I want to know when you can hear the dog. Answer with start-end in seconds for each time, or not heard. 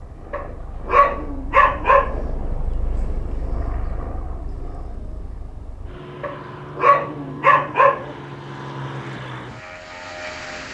0.3-2.2, 6.2-8.2.